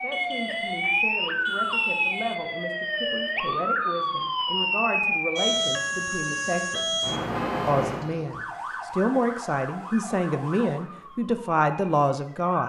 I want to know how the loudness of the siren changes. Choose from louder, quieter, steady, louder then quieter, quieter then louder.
quieter.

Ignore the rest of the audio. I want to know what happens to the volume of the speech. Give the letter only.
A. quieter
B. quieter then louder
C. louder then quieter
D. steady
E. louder
E.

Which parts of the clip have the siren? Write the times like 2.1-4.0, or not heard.
0.0-12.6.